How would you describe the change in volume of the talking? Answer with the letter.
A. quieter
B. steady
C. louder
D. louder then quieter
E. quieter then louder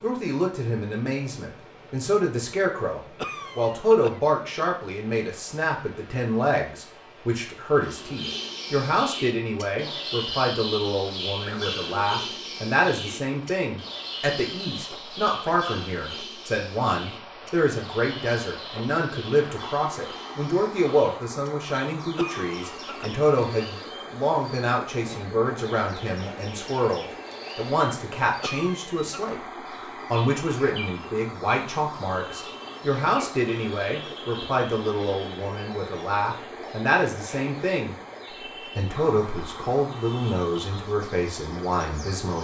B.